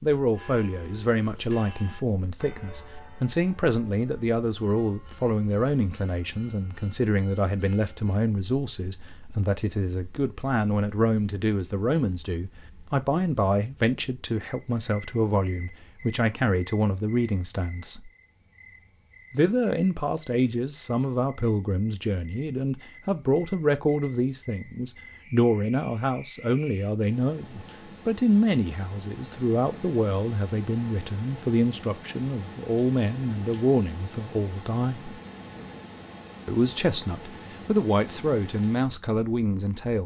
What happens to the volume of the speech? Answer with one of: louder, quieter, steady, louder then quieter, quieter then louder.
steady.